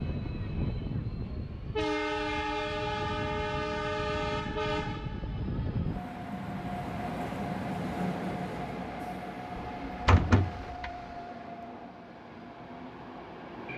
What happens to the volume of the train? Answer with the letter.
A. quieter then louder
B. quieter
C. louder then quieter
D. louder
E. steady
B.